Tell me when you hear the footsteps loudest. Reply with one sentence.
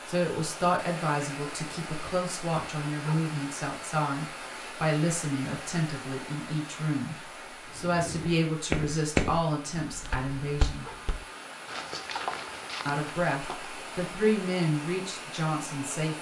The loudest moment of the footsteps is at 9 seconds.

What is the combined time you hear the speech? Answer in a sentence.
The speech can be heard for 14 seconds in total.